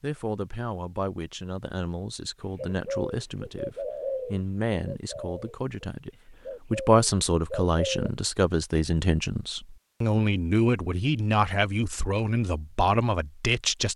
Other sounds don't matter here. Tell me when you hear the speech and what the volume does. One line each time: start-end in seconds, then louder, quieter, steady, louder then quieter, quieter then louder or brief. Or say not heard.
0.0-13.9 louder.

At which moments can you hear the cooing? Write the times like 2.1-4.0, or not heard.
2.5-8.1.